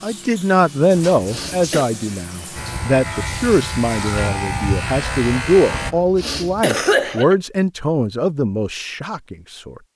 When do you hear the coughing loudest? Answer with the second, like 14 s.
7 s.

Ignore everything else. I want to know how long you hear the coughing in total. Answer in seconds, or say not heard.
2 s.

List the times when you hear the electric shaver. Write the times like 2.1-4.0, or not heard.
2.5-6.0.